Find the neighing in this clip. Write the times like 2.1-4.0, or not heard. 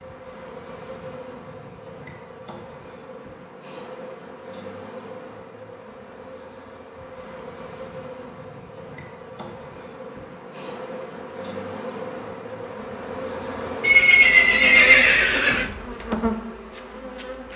13.8-15.7.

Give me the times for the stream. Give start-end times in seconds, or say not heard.
not heard.